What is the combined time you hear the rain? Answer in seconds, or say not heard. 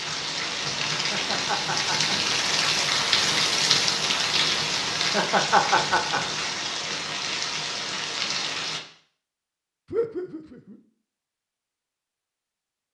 9 s.